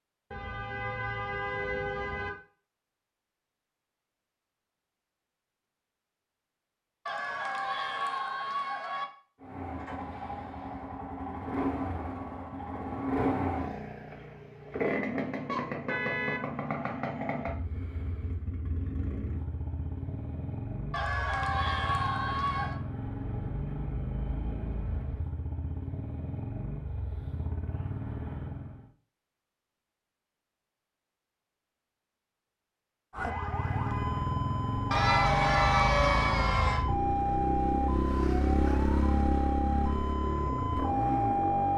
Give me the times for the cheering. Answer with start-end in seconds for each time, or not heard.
7.0-9.1, 20.9-22.8, 34.9-36.9.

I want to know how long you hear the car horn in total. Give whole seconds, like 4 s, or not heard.
4 s.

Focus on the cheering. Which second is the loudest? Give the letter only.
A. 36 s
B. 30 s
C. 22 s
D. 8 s
A.